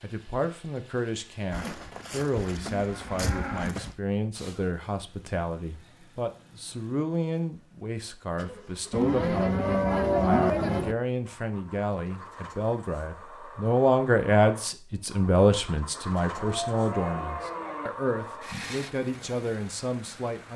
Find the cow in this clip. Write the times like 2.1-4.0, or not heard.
1.5-4.0, 8.9-10.9, 16.4-17.9.